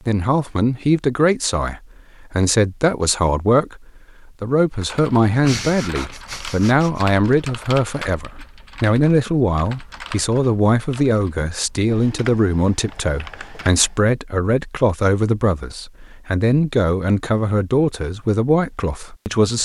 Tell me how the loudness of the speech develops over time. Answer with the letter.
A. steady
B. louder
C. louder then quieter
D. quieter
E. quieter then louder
A.